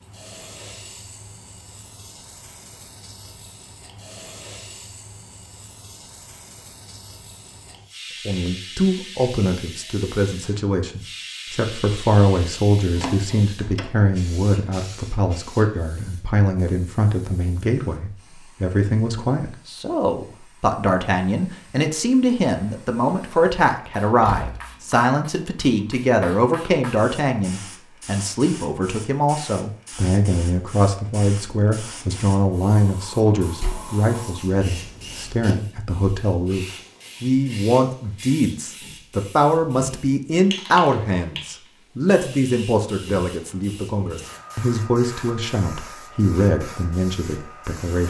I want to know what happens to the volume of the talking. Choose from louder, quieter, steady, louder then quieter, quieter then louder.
steady.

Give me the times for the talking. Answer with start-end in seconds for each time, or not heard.
8.2-48.0.